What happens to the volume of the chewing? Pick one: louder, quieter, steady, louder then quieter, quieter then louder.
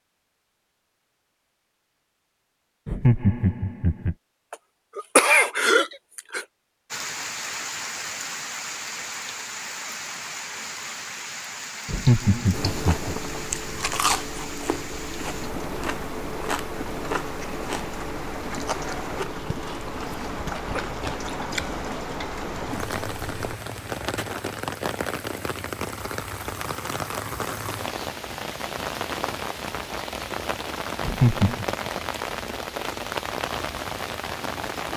quieter.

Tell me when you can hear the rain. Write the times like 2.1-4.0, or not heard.
6.9-34.9.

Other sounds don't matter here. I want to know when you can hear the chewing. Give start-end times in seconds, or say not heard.
12.5-23.6.